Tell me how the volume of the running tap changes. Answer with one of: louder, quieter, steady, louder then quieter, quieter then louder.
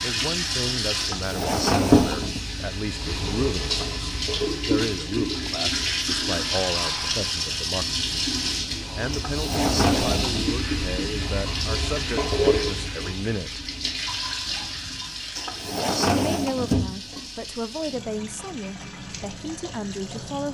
quieter.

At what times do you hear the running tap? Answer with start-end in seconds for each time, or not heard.
0.0-20.4.